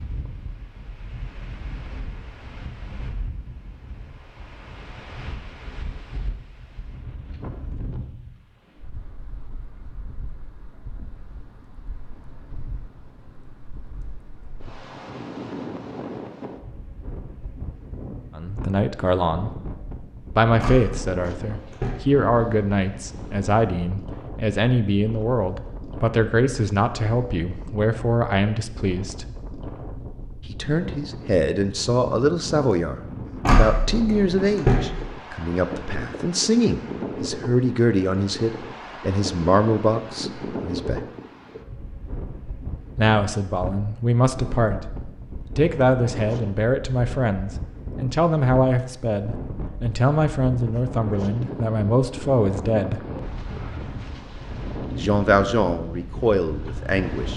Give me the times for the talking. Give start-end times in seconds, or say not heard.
18.4-19.6, 20.4-29.2, 30.4-41.0, 43.0-44.9, 45.5-53.0, 55.0-57.3.